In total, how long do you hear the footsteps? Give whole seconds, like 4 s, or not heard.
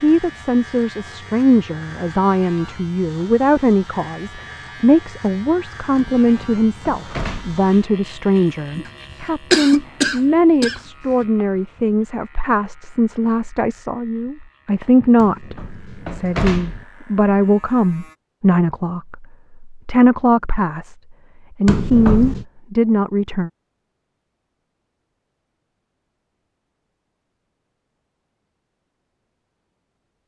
not heard.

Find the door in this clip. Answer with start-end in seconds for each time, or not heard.
6.2-7.6, 15.2-16.9, 21.6-22.4.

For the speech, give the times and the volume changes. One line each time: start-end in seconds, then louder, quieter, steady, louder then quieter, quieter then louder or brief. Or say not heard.
0.0-20.9 steady
21.6-23.5 brief.